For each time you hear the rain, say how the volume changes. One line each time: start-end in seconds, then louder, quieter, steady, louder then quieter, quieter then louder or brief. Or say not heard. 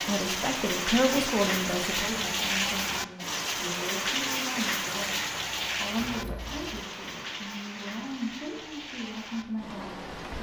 0.0-10.3 quieter.